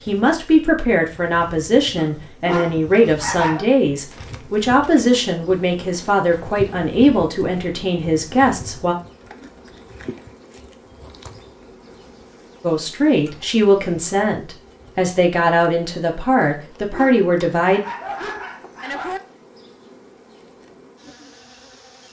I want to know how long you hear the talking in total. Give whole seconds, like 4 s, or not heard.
14 s.